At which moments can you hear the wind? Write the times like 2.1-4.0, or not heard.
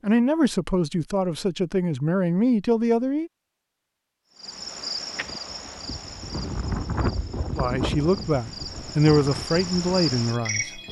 5.1-10.8.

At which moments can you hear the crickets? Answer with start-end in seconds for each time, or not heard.
4.2-10.8.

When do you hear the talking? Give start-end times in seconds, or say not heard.
0.0-3.3, 7.5-10.8.